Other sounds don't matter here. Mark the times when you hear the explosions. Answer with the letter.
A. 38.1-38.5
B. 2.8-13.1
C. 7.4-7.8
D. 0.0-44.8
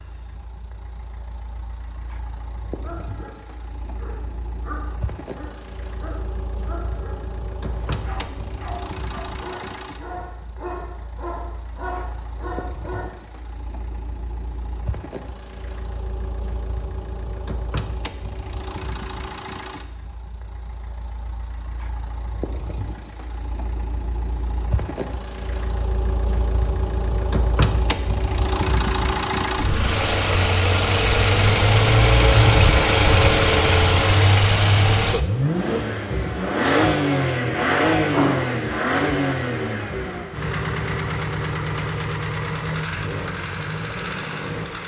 A.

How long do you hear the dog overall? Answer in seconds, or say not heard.
10 s.